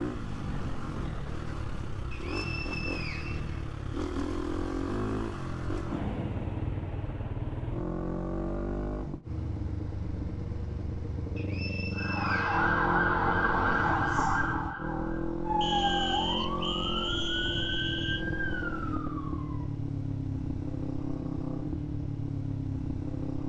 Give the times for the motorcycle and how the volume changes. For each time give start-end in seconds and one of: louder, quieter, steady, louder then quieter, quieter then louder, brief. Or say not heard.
0.0-23.4 steady.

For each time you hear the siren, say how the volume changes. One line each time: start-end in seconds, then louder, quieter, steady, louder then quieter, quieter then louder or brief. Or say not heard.
11.9-19.7 quieter.